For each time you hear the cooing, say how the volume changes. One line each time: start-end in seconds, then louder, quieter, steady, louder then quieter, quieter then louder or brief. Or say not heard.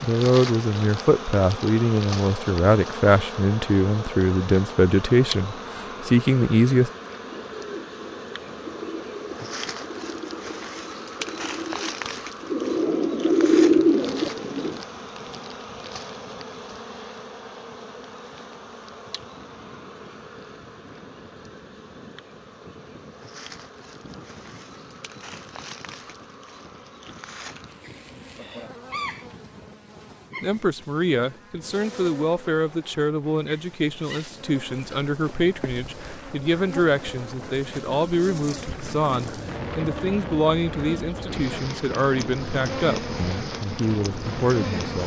7.3-14.8 louder.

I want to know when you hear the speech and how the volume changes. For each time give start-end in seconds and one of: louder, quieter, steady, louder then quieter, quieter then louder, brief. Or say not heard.
0.0-6.9 steady
30.4-45.0 steady.